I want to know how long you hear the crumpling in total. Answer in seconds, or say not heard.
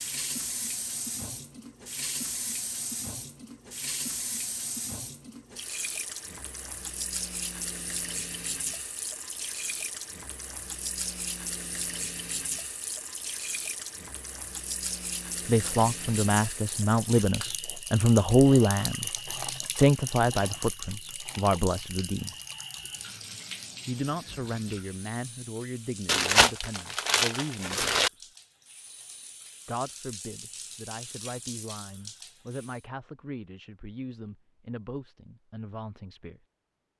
2 s.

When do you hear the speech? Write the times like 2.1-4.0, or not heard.
15.4-19.1, 19.8-22.4, 23.9-28.0, 29.6-36.4.